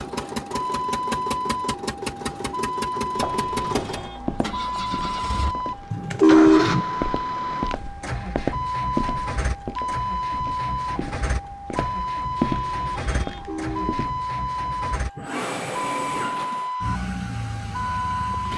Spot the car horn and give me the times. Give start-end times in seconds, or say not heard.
5.9-6.8, 13.2-14.0.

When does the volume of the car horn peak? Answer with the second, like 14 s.
6 s.